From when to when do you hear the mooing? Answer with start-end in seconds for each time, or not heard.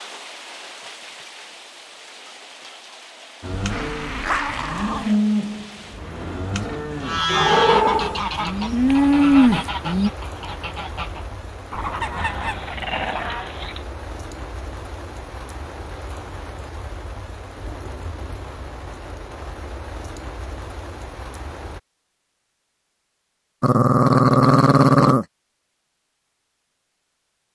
3.4-10.1.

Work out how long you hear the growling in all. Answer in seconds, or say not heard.
5 s.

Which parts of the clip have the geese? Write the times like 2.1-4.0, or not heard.
7.0-13.5.